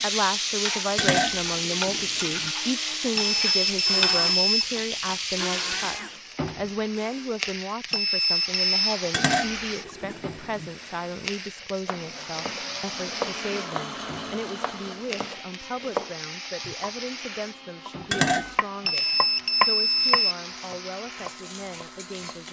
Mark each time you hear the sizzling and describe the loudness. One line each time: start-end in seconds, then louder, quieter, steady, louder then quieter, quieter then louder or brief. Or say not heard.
0.0-22.4 quieter.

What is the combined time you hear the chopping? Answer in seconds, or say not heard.
9 s.